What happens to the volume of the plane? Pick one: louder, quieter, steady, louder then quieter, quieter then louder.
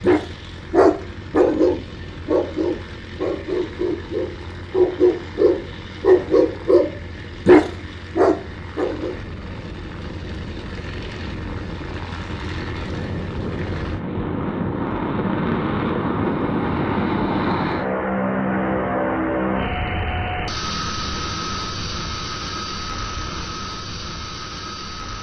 louder then quieter.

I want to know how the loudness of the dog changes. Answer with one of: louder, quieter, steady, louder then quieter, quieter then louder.
quieter then louder.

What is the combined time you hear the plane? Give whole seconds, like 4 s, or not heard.
25 s.